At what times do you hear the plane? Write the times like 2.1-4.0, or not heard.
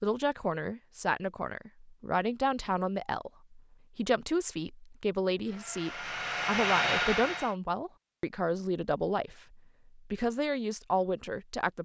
5.5-7.5.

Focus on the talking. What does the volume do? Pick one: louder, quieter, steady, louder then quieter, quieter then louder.
steady.